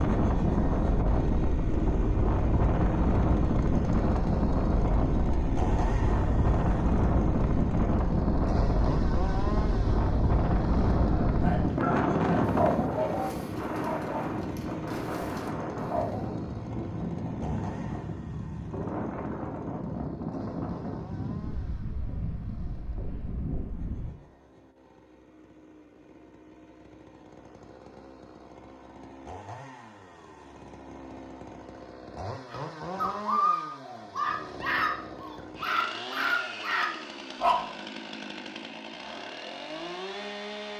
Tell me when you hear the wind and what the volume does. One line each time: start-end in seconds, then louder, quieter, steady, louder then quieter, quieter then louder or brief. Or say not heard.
0.0-24.1 quieter.